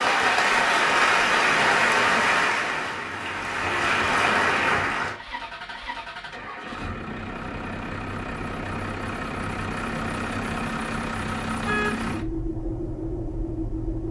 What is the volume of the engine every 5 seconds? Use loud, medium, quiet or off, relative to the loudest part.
medium, loud, loud.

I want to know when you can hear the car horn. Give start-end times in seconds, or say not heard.
11.7-12.1.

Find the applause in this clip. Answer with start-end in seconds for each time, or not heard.
0.0-5.2.